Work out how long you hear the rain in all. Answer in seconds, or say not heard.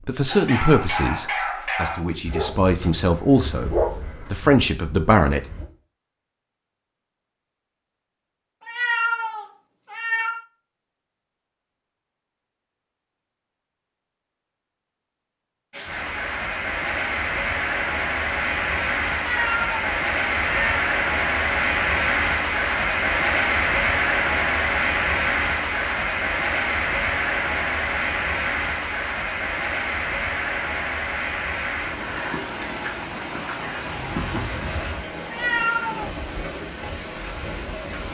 22 s.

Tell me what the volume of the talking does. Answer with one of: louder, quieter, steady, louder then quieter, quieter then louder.
quieter then louder.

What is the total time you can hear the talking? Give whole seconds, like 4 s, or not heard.
5 s.